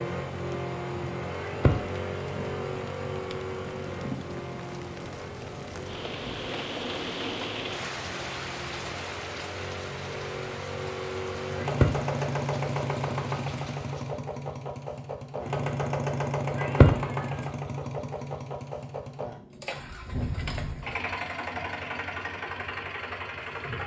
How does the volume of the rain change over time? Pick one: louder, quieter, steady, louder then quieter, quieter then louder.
louder then quieter.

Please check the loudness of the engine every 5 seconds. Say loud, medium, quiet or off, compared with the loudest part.
loud, medium, loud, loud, loud.